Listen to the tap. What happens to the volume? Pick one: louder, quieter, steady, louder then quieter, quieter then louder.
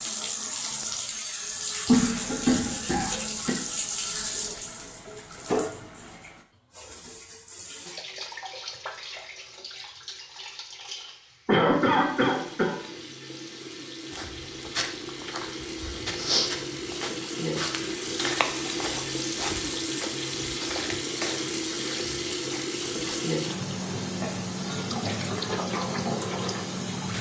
quieter then louder.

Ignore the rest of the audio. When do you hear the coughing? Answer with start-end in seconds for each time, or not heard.
1.9-3.5, 11.4-12.8, 24.2-25.4.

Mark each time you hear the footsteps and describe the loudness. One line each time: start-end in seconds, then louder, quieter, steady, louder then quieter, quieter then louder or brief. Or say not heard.
14.1-23.2 louder then quieter.